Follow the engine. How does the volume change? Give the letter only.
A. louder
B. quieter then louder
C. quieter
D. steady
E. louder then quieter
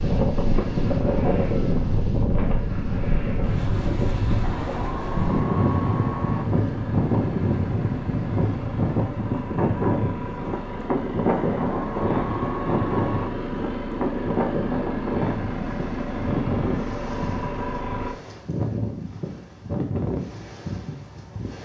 A.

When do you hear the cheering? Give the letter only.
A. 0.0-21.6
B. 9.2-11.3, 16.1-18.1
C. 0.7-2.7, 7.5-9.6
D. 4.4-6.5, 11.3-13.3
D.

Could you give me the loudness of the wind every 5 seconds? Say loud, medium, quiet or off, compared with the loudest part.
loud, loud, loud, medium, medium.